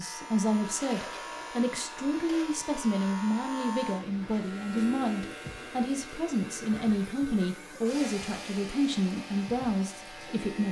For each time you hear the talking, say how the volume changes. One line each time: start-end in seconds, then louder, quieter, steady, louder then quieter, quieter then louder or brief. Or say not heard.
0.0-10.6 steady.